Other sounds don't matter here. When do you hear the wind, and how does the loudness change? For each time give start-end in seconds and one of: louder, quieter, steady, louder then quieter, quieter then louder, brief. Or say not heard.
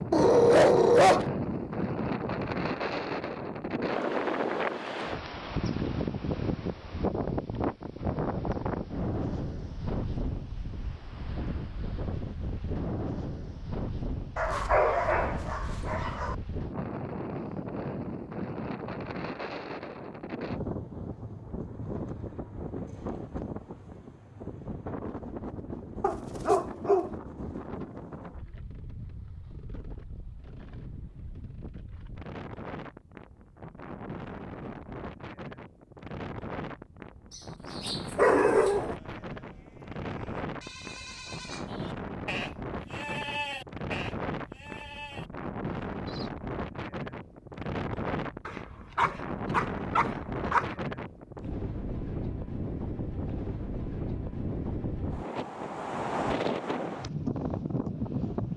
0.0-58.5 quieter then louder.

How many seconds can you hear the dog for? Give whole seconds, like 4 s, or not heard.
8 s.